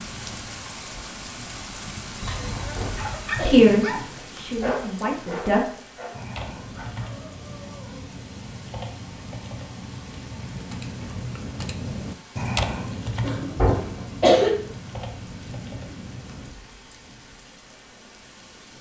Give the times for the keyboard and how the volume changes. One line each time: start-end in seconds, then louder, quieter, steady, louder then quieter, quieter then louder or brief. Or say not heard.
6.1-16.5 louder then quieter.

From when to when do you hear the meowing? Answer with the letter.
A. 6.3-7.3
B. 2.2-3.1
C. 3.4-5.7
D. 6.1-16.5
B.